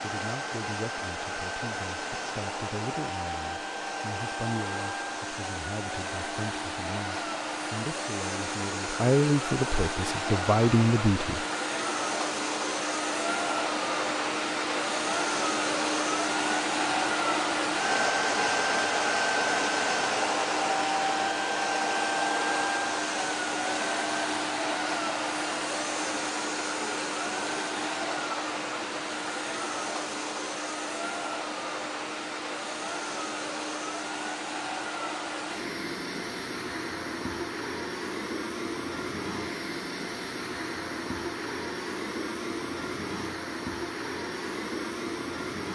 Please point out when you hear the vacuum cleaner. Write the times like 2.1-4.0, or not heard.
0.0-45.7.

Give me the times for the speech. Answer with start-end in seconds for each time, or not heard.
0.0-11.4.